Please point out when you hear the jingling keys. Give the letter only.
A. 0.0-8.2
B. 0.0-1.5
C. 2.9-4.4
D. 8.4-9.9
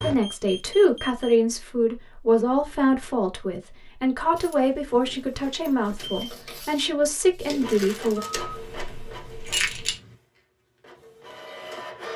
D.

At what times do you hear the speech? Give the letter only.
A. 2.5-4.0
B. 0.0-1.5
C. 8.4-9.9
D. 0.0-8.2
D.